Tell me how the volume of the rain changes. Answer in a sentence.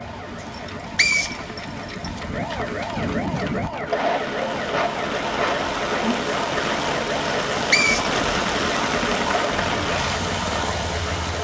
The loudness of the rain goes up.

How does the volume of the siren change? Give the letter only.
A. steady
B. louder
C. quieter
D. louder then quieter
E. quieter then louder
B.